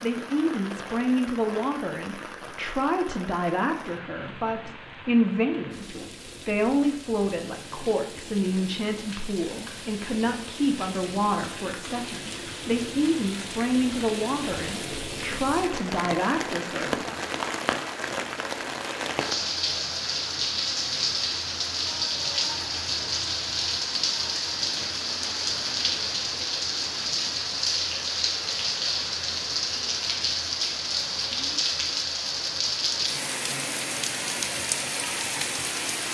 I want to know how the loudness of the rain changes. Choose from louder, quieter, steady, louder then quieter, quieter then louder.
louder.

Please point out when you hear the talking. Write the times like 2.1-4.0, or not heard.
0.0-17.1.